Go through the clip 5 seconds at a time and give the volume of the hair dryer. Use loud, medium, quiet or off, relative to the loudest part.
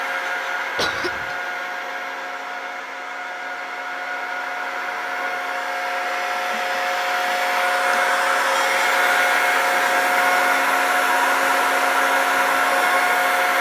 medium, loud, loud.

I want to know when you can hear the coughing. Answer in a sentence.
The coughing can be heard from 0.8 to 1.4 s.